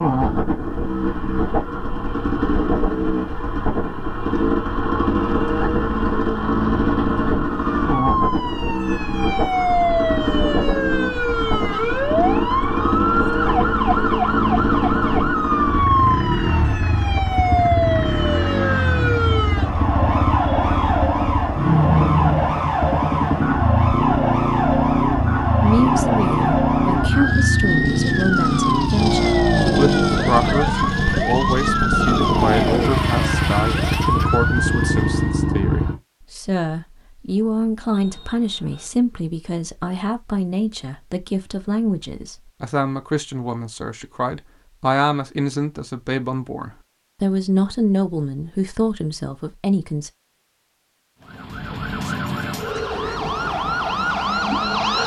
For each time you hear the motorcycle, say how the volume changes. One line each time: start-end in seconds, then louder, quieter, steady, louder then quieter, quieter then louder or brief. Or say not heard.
0.0-36.0 steady.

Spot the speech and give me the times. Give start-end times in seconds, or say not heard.
25.6-50.1.